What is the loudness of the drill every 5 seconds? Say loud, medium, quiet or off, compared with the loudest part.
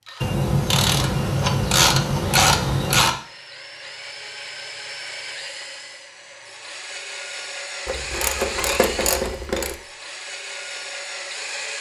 medium, loud, loud.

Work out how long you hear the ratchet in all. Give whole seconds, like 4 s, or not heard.
5 s.